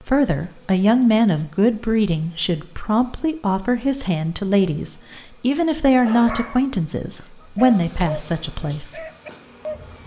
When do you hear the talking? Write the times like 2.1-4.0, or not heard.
0.1-9.1.